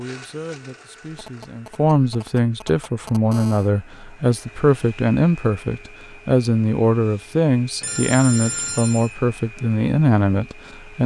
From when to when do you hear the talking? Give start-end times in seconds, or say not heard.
0.0-11.0.